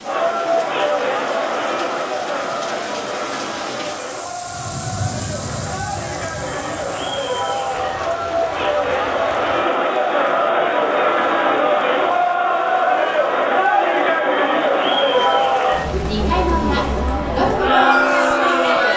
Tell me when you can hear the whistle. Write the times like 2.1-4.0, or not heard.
not heard.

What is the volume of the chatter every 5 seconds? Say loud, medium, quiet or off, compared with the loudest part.
medium, medium, loud, loud.